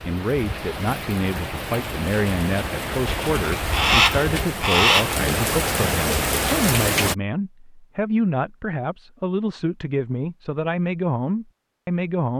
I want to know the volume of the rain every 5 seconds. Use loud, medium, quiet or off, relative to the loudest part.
medium, loud, off.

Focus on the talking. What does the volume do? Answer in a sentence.
The loudness of the talking stays about the same.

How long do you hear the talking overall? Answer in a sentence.
You can hear the talking for 12 seconds altogether.